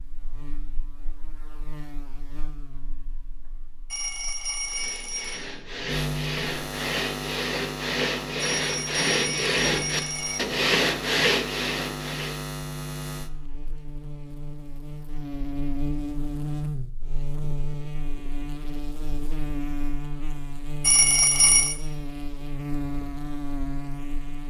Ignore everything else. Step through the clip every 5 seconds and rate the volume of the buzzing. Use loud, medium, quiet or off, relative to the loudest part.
quiet, loud, loud, loud, loud.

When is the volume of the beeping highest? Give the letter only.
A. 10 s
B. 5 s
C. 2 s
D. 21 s
D.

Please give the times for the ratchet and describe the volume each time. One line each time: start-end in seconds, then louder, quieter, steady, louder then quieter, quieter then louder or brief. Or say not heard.
not heard.